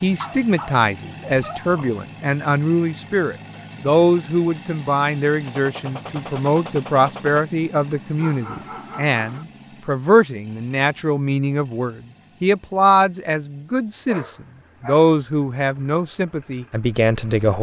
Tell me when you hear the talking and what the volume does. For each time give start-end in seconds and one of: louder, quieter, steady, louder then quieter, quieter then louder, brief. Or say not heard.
0.0-17.5 steady.